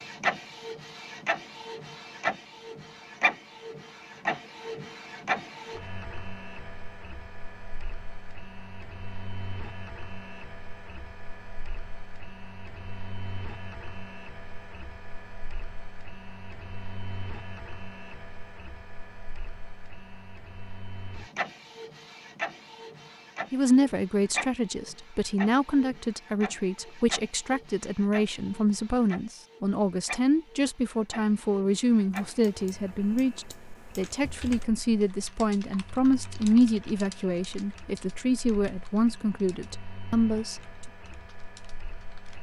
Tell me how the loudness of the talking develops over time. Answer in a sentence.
The volume of the talking stays about the same.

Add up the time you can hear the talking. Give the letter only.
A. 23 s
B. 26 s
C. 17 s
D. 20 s
C.